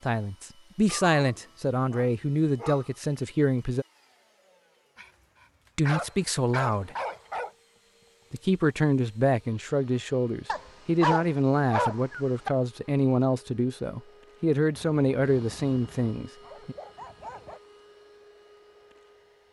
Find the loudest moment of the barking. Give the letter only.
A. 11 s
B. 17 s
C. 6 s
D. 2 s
A.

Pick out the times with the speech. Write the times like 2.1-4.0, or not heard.
0.0-3.9, 5.8-7.0, 8.3-16.8.